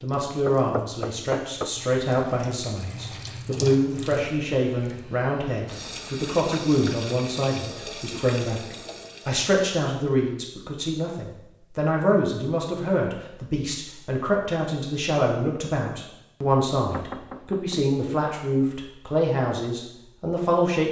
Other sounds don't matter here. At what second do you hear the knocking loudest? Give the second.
1 s.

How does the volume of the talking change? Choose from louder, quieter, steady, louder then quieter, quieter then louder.
steady.